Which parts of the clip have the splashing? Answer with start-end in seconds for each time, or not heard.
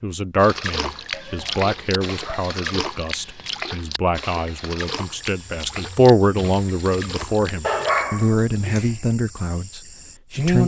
0.3-8.1.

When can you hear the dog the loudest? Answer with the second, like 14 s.
8 s.